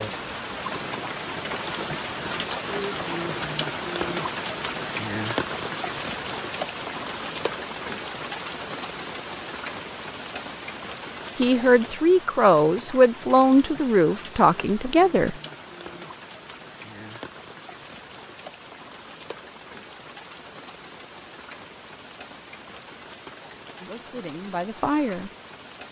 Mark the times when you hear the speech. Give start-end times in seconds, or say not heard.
11.3-15.3, 23.8-25.3.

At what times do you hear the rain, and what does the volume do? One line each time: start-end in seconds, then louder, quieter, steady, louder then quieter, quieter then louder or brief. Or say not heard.
0.0-25.8 quieter.